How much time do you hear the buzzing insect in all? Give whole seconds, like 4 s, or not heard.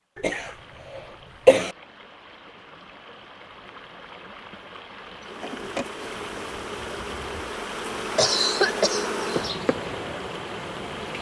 6 s.